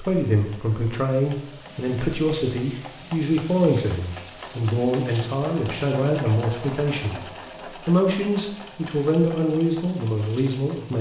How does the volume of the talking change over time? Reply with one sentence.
The loudness of the talking stays about the same.